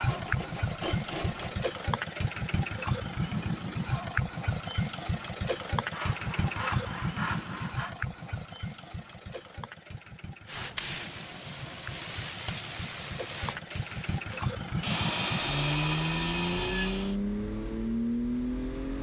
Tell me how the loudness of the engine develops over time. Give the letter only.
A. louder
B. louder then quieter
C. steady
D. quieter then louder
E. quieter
D.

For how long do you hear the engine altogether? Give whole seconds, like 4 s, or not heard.
19 s.